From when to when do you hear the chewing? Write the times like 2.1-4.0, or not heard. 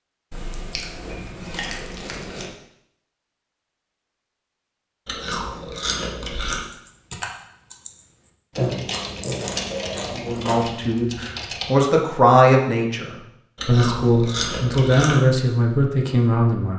0.3-2.5, 5.0-6.6, 8.6-10.7, 13.6-15.2.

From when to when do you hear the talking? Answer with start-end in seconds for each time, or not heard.
10.1-16.7.